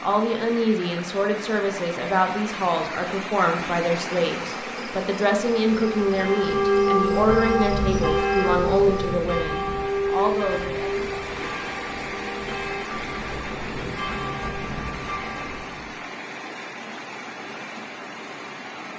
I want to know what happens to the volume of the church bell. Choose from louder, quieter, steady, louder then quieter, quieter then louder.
quieter.